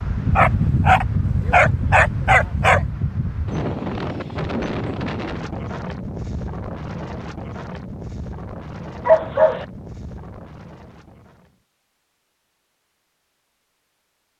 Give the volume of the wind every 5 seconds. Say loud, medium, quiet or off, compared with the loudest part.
loud, medium, quiet.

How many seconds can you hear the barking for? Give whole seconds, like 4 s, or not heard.
3 s.